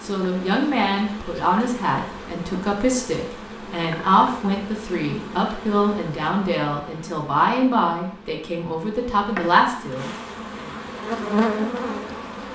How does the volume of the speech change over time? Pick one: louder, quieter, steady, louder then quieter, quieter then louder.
steady.